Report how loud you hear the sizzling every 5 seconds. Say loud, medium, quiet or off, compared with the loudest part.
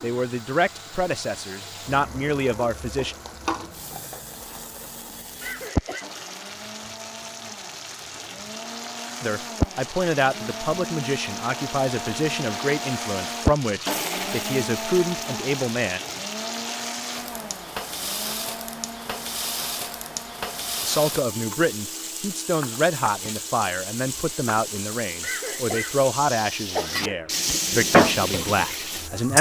quiet, medium, medium, medium, medium, loud.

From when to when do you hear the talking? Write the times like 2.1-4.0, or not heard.
0.0-3.1, 9.2-16.0, 20.8-29.3.